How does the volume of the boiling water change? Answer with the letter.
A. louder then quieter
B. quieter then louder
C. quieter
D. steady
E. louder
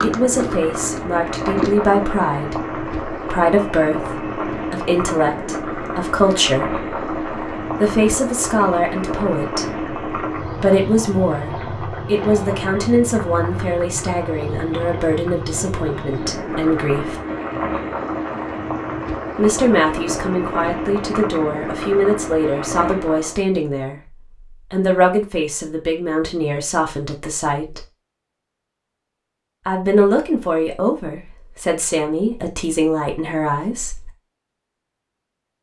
D.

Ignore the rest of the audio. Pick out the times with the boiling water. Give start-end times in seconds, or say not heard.
0.0-23.4.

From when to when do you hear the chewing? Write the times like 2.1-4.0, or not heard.
0.0-1.8.